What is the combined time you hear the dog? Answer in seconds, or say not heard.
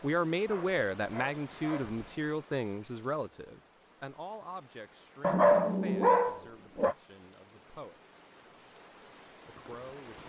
3 s.